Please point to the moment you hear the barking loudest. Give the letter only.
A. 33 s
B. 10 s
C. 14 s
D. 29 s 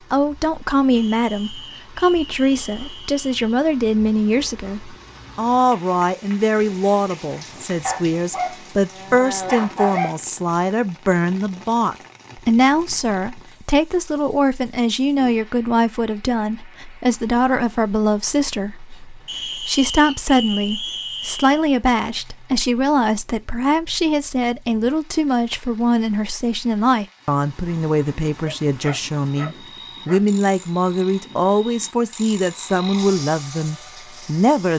B.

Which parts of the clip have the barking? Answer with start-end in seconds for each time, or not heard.
7.8-10.2, 28.4-30.2.